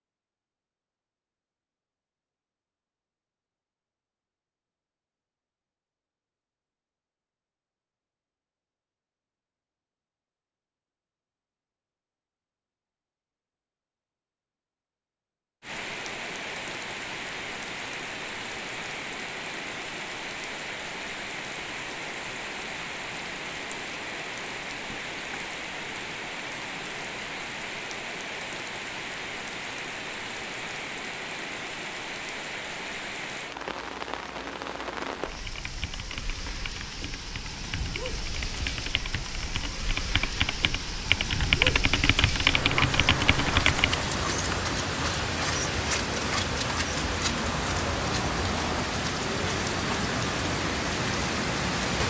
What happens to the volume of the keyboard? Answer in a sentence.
The volume of the keyboard goes up.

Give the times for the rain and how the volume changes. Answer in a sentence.
You can hear the rain from 15.6 to 52.0 s, getting louder.